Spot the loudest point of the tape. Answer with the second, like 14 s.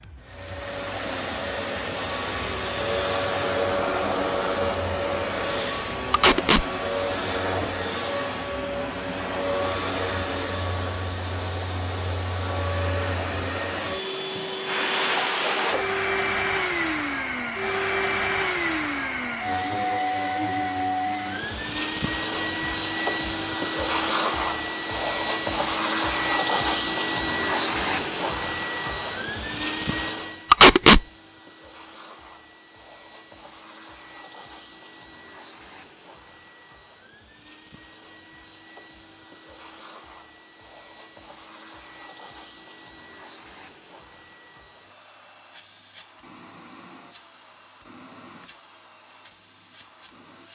31 s.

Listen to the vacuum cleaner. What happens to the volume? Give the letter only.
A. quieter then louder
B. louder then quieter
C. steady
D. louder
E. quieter
E.